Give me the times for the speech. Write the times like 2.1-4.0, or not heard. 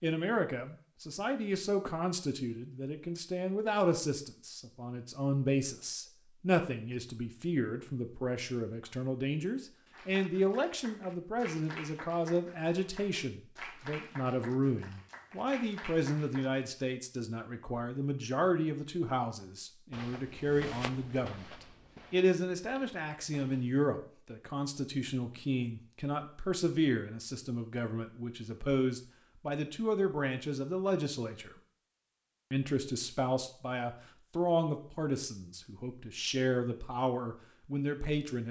0.0-31.6, 32.5-38.4.